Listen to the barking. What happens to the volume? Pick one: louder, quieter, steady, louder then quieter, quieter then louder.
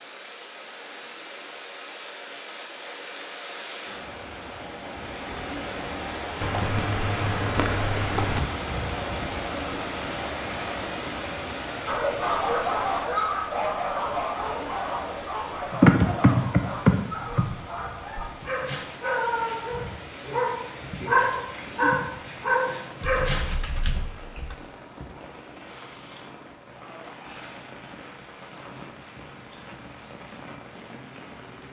quieter then louder.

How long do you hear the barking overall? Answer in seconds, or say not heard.
12 s.